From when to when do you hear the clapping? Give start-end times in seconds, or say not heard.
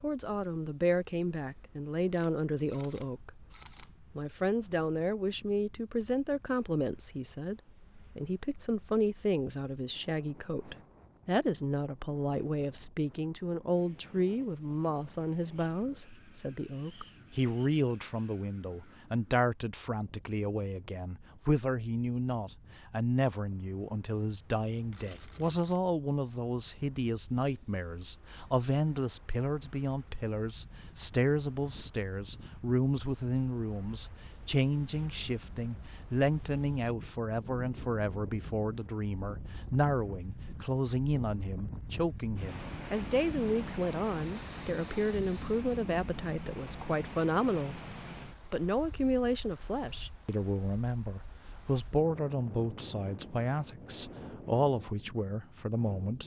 not heard.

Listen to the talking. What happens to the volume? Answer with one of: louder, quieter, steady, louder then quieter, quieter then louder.
steady.